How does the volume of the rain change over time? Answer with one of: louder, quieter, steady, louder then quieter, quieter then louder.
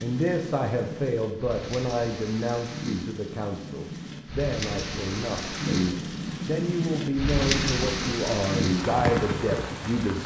louder.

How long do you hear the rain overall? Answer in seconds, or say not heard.
10 s.